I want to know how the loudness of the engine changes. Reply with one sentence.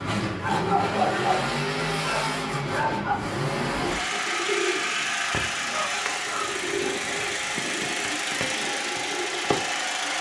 The volume of the engine stays about the same.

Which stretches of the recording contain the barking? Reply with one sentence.
The barking can be heard from 0.4 to 3.2 s and from 5.5 to 6.6 s.